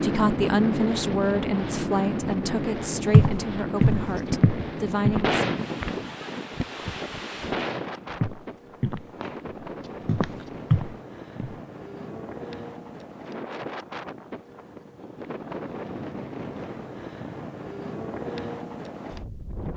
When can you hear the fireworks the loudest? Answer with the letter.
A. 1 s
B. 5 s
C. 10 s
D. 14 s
B.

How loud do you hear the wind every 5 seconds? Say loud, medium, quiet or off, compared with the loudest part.
loud, medium, medium, medium.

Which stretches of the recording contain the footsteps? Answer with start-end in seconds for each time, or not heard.
3.1-5.3, 8.2-11.6.